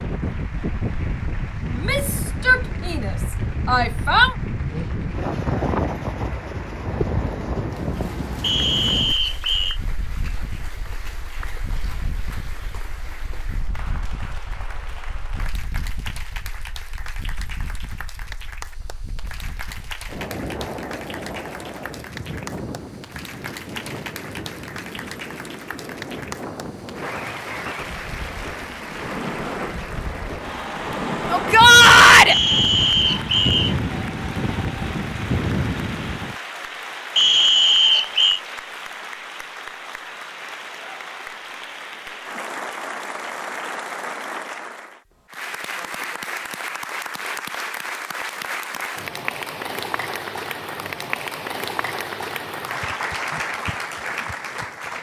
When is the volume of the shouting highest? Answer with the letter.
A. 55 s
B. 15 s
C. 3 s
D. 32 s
D.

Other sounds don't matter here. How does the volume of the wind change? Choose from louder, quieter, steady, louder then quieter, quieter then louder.
quieter then louder.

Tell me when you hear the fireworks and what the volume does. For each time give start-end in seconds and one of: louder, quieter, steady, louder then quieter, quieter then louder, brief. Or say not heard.
not heard.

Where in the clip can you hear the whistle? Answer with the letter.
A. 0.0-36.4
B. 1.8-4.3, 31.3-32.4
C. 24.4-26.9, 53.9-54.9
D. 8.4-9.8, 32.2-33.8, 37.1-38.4
D.